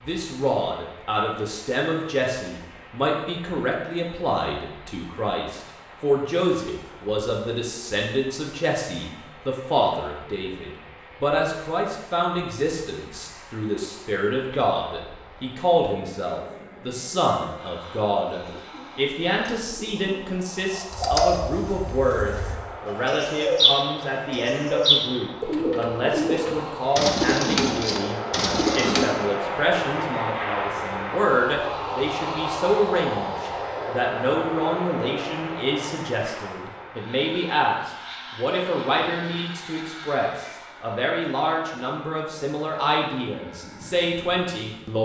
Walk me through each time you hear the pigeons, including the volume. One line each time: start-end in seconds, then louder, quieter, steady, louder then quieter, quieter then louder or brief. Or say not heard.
18.4-29.1 louder.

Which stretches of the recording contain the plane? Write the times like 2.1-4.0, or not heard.
0.0-44.9.